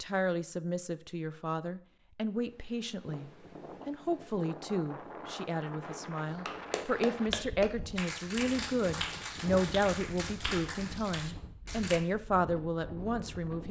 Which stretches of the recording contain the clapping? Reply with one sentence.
You can hear the clapping from 6.3 to 12.0 s.